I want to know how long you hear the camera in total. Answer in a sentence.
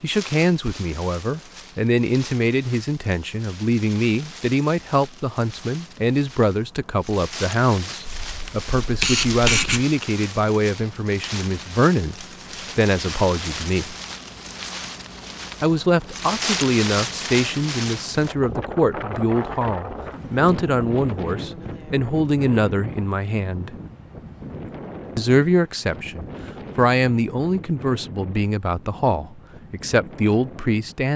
The camera can be heard for 2 seconds in total.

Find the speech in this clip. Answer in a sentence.
The speech can be heard from 0.0 to 13.9 s, from 15.6 to 23.7 s and from 25.1 to 31.1 s.